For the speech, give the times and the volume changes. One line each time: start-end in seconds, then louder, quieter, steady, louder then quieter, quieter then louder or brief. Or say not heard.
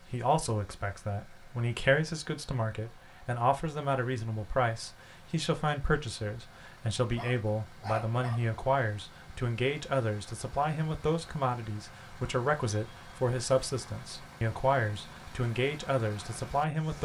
0.1-16.9 steady.